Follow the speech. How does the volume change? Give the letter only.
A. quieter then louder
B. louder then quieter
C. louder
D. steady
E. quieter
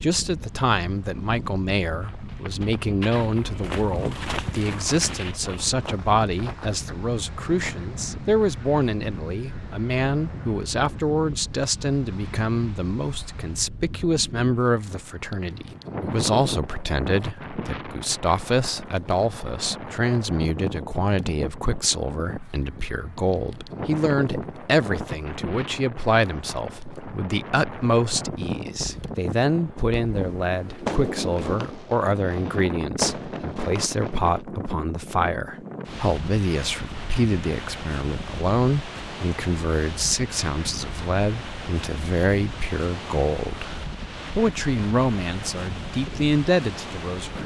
D.